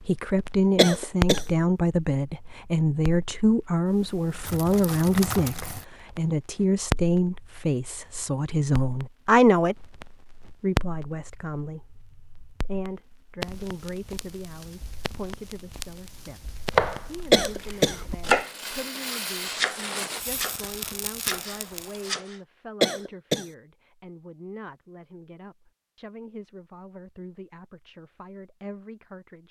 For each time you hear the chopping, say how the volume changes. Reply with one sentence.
The chopping can be heard from 16.7 to 22.4 s, getting louder then quieter.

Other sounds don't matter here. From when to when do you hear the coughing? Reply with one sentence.
You can hear the coughing from 0.8 to 1.4 s, from 17.3 to 17.9 s and from 22.8 to 23.4 s.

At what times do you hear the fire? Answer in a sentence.
The fire can be heard from 0.0 to 22.1 s.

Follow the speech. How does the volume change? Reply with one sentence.
The loudness of the speech goes down.